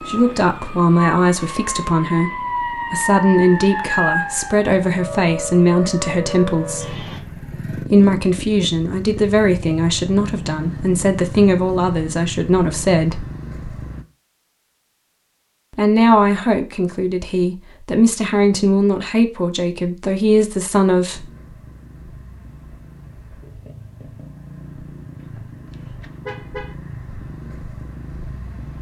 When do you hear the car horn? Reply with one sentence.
The car horn can be heard from 25.7 to 26.8 s.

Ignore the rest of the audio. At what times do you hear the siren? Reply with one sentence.
The siren can be heard from 0.0 to 7.2 s.